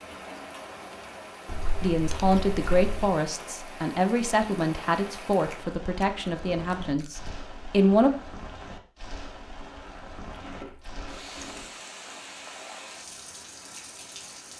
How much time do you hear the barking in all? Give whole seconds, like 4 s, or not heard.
not heard.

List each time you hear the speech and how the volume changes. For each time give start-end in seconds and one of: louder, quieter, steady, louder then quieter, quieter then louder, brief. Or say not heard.
1.8-8.1 quieter.